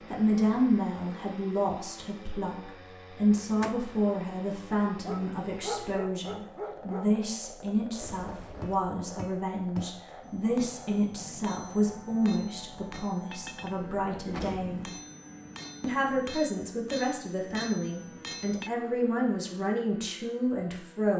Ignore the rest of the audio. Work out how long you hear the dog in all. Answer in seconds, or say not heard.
2 s.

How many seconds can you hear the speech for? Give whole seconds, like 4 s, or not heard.
20 s.